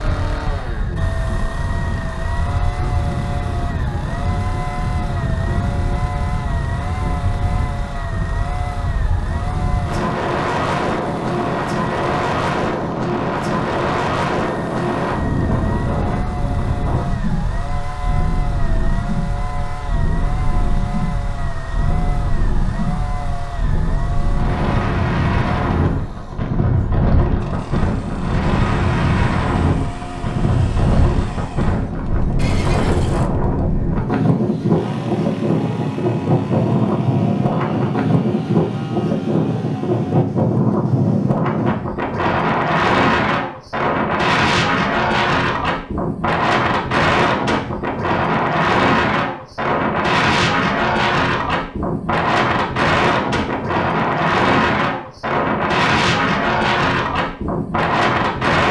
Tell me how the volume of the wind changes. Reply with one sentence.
The loudness of the wind goes up.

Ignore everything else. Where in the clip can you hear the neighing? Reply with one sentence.
You can hear the neighing from 32.4 to 33.3 s.